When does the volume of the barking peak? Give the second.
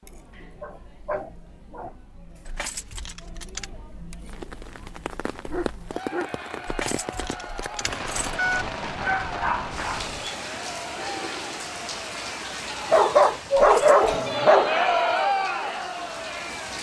14 s.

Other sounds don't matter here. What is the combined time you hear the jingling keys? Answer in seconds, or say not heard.
4 s.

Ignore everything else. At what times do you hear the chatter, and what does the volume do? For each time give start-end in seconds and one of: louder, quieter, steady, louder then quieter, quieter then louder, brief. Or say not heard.
0.0-16.7 louder.